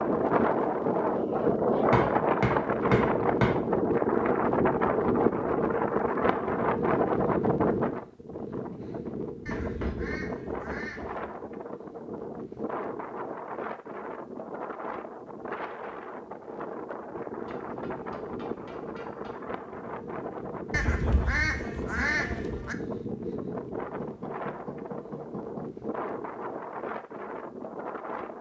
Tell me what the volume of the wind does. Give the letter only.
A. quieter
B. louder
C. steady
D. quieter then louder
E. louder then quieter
A.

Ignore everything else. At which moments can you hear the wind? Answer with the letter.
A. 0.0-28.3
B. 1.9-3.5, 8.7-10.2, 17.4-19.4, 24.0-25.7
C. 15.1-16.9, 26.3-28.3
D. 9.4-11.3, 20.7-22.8
A.